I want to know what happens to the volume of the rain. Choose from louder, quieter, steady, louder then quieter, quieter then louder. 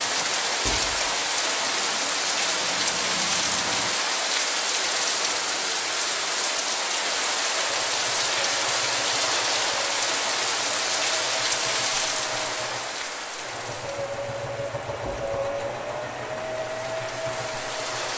quieter.